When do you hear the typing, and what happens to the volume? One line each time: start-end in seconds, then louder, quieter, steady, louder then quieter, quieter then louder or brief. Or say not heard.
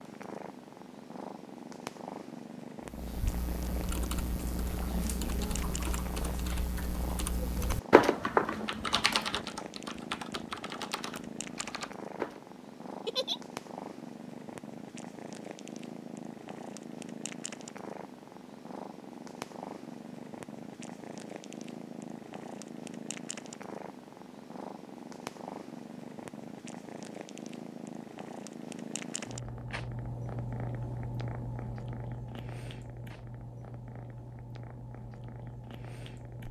2.9-12.4 louder then quieter.